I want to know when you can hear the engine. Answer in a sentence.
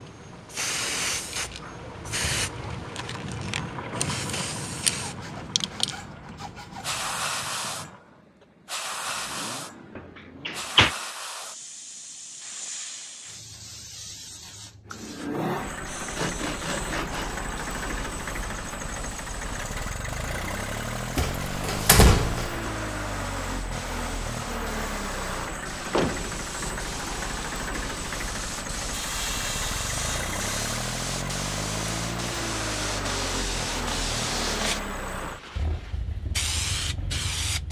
You can hear the engine from 0.0 to 11.2 s and from 14.8 to 37.6 s.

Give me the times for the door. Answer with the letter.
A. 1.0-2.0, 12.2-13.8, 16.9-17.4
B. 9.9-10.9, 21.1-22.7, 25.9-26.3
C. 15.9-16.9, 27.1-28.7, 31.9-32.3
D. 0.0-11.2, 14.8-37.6
B.